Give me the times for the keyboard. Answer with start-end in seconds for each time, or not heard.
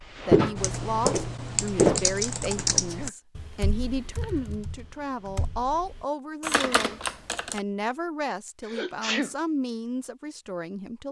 0.6-7.6.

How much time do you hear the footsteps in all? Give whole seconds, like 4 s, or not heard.
2 s.